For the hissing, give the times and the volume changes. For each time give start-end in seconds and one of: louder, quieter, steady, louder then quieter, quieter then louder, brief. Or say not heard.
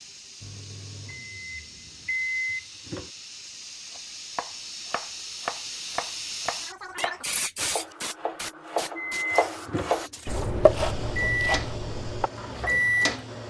0.0-13.4 louder then quieter.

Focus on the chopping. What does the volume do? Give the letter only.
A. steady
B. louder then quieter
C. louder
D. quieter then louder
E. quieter
B.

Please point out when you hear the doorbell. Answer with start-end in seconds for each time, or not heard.
not heard.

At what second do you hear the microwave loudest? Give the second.
13 s.